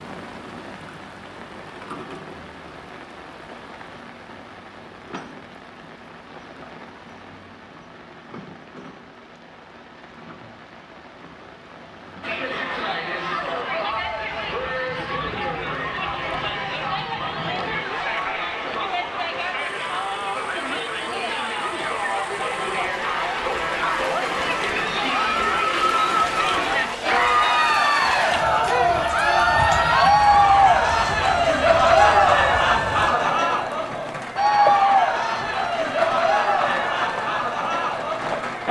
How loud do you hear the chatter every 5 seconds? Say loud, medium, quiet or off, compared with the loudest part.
off, off, medium, medium, medium, loud, loud, medium.